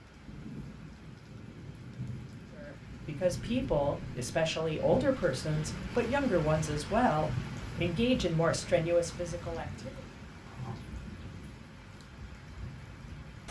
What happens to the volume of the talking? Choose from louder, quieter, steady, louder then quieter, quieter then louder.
steady.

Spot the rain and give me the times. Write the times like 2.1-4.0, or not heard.
0.0-13.4.